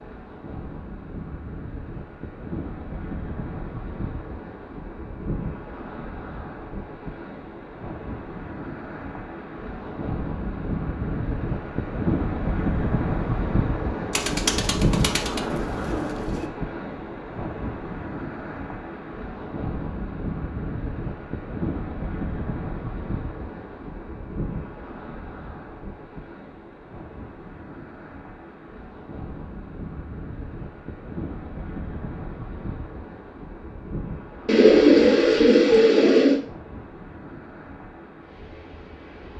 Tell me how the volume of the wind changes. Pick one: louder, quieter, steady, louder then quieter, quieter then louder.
louder then quieter.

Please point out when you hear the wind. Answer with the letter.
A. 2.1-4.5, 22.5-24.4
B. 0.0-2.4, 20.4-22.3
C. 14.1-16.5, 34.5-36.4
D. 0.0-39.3
D.